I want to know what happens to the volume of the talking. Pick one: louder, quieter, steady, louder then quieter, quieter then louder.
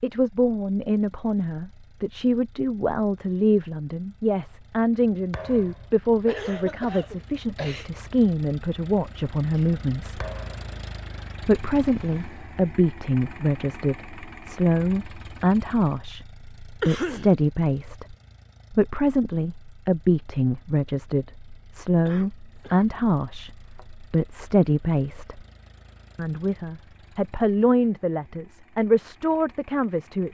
steady.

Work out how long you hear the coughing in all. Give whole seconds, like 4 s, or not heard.
3 s.